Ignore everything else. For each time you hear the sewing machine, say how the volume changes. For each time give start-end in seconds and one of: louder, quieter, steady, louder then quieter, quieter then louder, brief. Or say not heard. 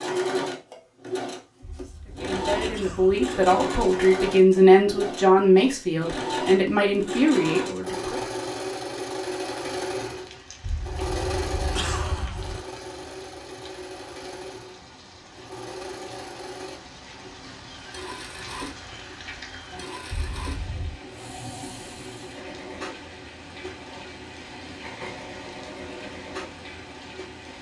0.0-27.5 quieter.